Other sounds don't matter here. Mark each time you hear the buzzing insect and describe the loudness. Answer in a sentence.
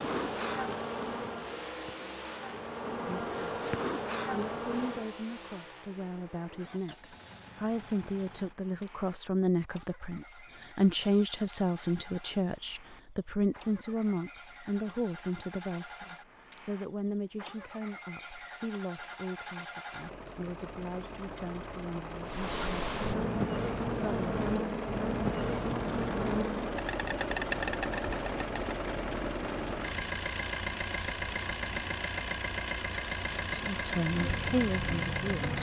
You can hear the buzzing insect from 0.0 to 5.1 s, getting quieter then louder; and from 22.2 to 35.5 s, at a steady volume.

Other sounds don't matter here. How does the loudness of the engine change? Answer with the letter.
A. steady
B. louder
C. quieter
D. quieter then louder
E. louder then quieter
D.